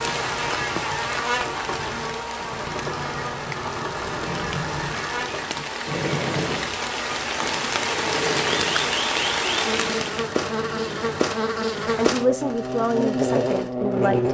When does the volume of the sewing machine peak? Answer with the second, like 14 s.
6 s.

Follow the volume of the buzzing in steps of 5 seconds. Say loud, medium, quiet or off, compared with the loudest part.
medium, medium, loud.